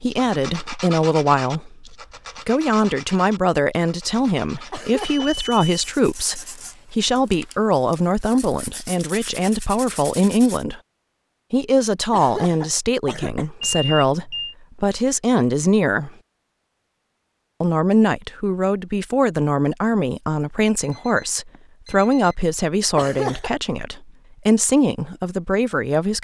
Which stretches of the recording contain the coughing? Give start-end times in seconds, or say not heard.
4.7-5.3, 12.1-13.4, 22.9-23.5.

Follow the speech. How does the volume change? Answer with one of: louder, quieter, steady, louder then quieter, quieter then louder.
steady.